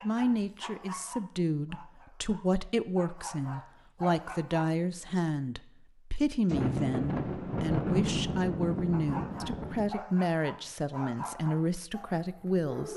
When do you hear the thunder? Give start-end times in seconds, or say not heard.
6.5-9.9.